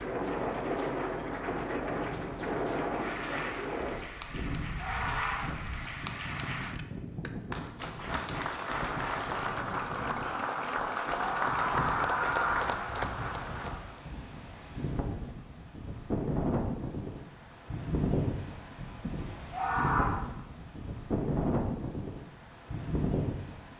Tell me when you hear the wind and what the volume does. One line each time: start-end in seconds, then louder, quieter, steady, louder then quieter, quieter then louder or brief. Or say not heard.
0.0-23.7 quieter then louder.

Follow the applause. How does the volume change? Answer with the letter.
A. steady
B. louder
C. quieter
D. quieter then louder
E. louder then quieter
B.